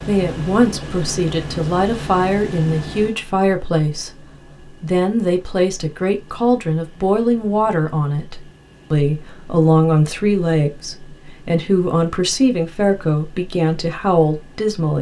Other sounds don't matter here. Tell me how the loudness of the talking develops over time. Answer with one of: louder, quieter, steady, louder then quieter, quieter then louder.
steady.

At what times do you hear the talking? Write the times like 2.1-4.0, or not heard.
0.0-14.9.